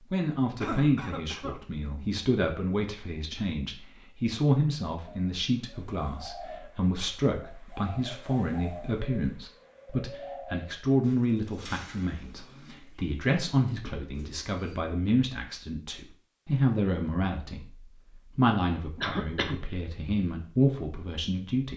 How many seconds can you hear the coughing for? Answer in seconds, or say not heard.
2 s.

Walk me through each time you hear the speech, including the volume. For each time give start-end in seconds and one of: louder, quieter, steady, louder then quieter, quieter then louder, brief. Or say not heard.
0.1-21.7 steady.